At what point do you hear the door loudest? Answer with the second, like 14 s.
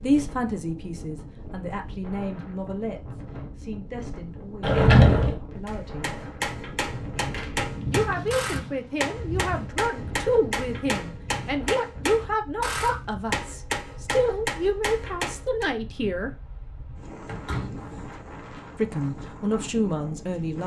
5 s.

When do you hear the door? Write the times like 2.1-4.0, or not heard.
4.6-5.3, 7.2-7.8, 17.2-18.1.